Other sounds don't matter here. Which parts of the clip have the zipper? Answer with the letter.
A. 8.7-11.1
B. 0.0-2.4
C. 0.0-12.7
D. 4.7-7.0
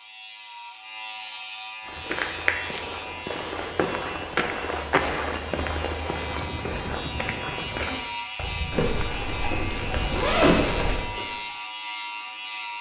A.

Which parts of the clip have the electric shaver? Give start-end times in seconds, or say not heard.
0.0-12.7.